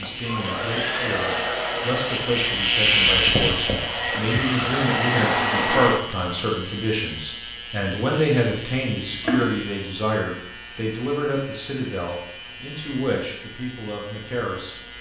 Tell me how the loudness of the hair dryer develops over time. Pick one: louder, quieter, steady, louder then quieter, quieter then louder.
quieter then louder.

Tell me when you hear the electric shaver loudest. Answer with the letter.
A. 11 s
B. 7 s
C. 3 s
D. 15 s
C.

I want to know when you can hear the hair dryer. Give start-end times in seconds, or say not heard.
0.0-6.2.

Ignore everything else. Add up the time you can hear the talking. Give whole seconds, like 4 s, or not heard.
15 s.